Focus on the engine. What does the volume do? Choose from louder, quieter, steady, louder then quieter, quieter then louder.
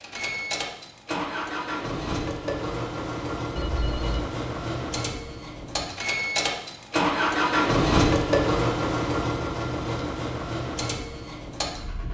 louder then quieter.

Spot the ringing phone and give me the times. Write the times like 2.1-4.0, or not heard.
3.5-4.4.